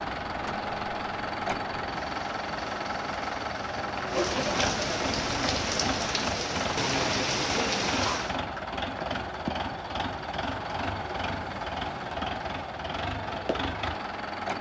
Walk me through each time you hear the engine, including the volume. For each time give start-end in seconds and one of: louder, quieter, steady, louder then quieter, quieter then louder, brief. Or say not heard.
0.0-14.5 steady.